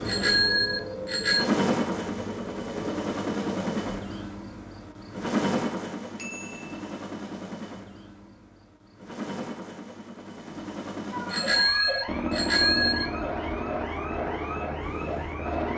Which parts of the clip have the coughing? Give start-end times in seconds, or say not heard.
not heard.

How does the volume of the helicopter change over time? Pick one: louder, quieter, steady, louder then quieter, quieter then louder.
quieter then louder.